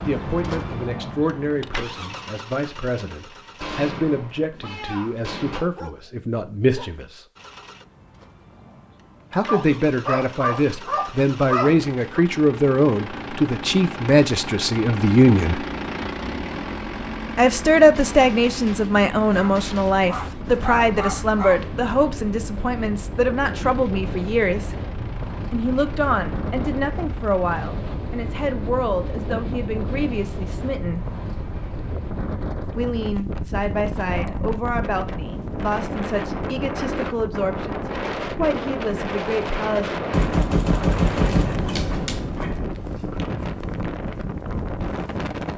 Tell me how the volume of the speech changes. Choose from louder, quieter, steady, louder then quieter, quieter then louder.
louder then quieter.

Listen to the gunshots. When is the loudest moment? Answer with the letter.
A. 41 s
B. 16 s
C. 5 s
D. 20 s
A.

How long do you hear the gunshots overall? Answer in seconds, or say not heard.
6 s.